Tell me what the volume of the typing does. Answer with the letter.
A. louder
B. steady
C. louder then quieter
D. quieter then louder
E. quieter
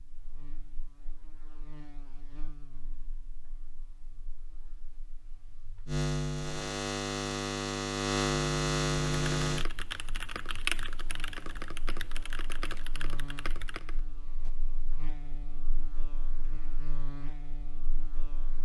C.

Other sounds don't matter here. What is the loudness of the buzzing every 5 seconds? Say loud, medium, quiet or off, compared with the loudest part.
quiet, loud, quiet, quiet.